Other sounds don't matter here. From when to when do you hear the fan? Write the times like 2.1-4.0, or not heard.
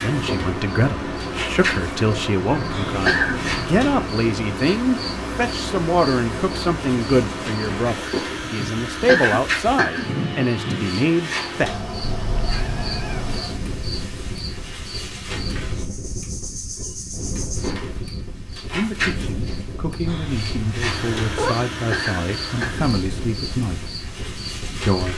0.0-25.1.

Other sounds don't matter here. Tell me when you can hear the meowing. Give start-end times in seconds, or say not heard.
2.5-4.0, 12.0-13.4, 20.1-21.6.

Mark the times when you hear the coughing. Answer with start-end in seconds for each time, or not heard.
2.4-3.4, 8.4-10.1, 21.2-22.9.